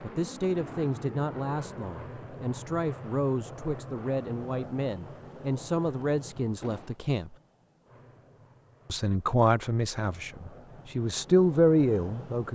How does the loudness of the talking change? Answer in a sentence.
The volume of the talking goes up.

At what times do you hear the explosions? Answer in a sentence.
You can hear the explosions from 6.6 to 7.0 s.